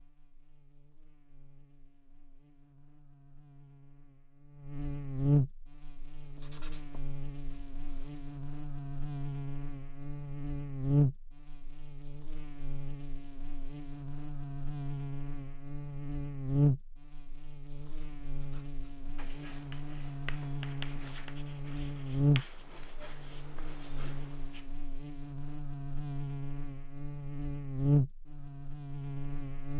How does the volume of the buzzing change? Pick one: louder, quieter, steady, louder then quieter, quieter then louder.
steady.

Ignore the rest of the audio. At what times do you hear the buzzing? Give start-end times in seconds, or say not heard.
0.0-29.7.